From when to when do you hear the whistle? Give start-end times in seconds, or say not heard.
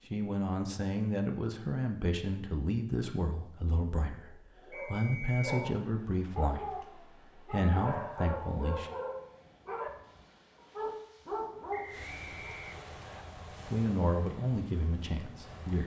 4.7-5.6, 11.7-13.2.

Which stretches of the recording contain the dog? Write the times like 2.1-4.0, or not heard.
4.1-12.7.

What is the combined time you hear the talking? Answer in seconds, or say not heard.
11 s.